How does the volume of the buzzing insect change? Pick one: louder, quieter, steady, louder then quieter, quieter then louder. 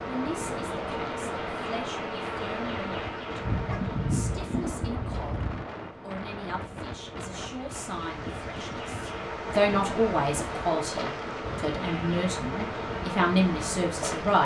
quieter then louder.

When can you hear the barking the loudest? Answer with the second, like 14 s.
4 s.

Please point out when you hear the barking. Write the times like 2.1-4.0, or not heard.
3.4-5.7.